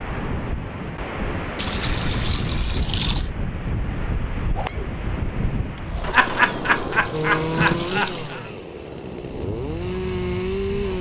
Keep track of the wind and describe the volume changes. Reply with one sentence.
The volume of the wind goes down.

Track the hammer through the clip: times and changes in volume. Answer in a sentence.
The hammer can't be heard in this clip.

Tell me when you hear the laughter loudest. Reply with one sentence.
The loudest moment of the laughter is at 6 seconds.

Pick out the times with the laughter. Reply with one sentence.
You can hear the laughter from 6.0 to 8.5 s.